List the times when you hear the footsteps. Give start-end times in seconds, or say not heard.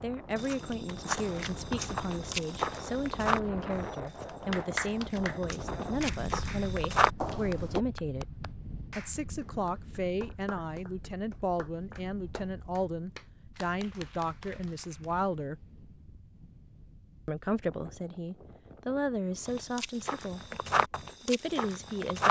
0.3-7.8, 19.4-22.2.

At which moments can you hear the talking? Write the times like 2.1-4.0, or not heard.
0.0-15.6, 17.2-20.4, 21.2-22.2.